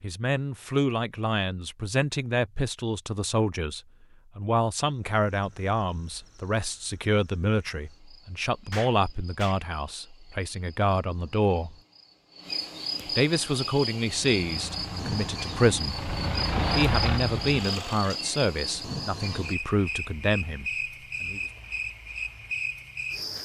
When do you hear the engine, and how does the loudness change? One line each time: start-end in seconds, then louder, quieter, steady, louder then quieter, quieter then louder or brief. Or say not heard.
14.2-18.2 louder then quieter.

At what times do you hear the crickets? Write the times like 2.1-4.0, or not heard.
5.0-23.4.